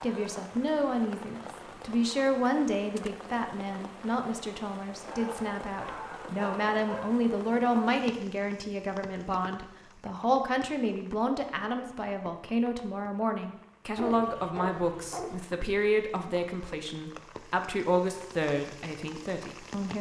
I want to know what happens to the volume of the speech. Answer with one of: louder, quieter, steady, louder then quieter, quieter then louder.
steady.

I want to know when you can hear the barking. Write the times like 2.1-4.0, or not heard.
5.1-7.1, 13.9-15.4.